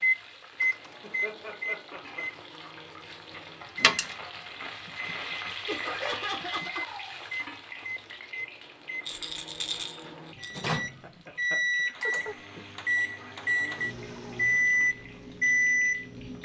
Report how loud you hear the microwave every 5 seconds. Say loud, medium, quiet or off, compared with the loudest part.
medium, quiet, loud, loud.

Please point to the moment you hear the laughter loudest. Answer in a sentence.
The volume of the laughter peaks at 6 seconds.